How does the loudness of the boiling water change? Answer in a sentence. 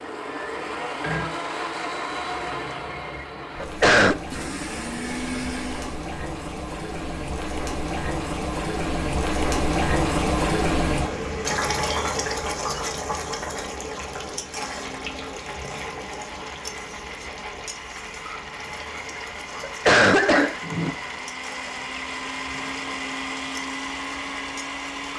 The loudness of the boiling water goes up, then down.